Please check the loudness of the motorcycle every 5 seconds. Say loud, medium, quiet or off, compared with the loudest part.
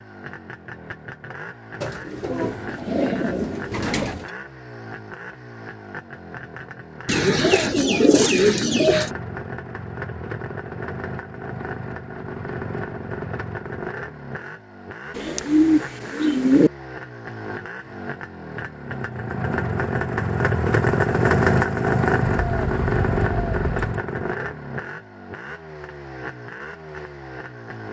quiet, quiet, medium, medium, loud, quiet.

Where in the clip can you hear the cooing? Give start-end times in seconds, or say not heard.
1.8-4.3, 7.0-9.1, 15.2-16.7, 22.2-23.9.